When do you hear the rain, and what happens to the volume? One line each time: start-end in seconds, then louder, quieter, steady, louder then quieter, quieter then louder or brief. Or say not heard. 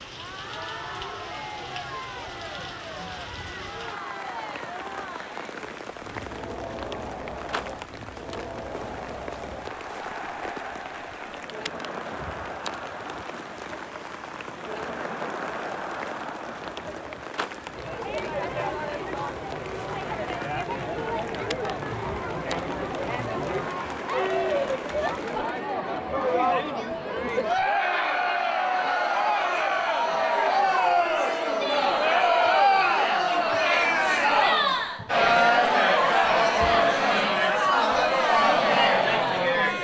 0.0-25.5 steady.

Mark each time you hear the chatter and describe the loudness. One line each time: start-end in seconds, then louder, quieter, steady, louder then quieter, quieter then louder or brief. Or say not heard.
0.0-39.7 louder.